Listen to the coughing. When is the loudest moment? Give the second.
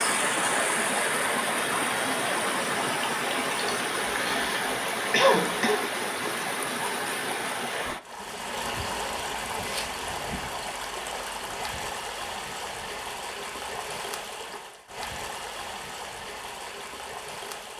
5 s.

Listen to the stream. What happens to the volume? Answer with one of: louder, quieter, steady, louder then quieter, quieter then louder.
quieter.